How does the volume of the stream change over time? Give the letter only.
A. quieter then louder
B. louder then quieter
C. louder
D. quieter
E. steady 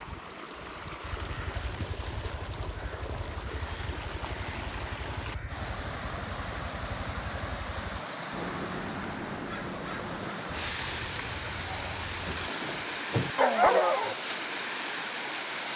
C.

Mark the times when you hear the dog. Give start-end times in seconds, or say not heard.
11.7-14.2.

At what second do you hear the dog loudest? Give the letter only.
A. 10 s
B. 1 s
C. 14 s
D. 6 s
C.